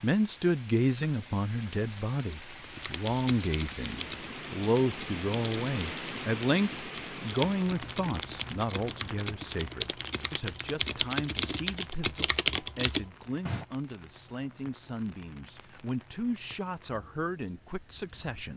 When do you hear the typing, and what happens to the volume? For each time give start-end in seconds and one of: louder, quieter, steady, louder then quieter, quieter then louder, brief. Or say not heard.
2.7-13.7 louder.